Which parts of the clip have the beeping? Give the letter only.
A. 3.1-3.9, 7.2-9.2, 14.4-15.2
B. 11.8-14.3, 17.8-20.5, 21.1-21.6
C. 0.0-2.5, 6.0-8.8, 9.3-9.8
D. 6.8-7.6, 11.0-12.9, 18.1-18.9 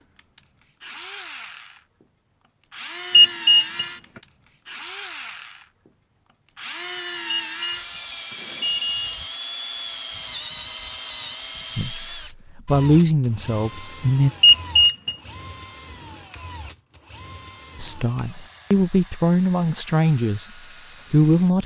A.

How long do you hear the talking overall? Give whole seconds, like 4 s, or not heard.
6 s.